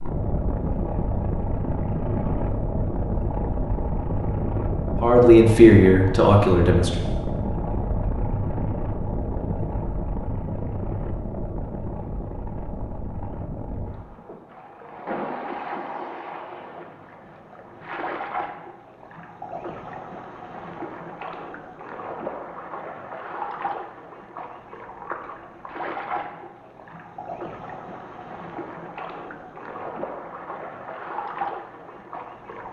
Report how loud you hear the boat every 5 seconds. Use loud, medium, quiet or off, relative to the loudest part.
loud, loud, medium, medium, medium, medium, medium.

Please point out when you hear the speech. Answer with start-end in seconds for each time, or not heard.
5.0-7.0.